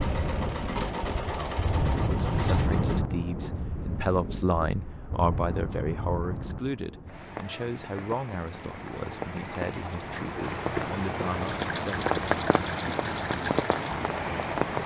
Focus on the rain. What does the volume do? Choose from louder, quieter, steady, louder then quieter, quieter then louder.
quieter then louder.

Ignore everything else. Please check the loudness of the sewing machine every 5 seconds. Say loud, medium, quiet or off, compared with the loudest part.
loud, off, loud.